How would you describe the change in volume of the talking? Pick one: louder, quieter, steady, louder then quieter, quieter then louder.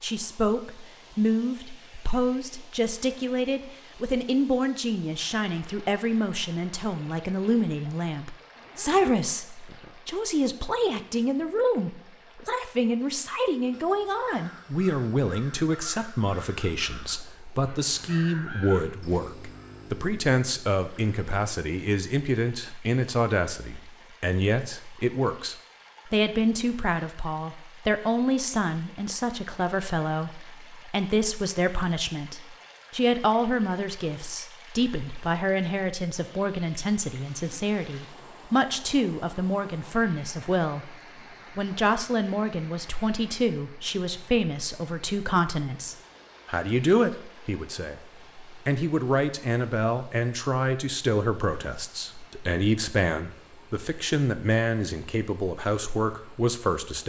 steady.